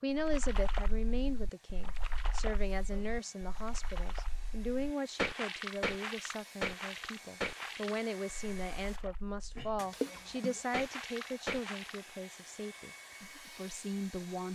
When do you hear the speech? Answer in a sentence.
You can hear the speech from 0.0 to 14.5 s.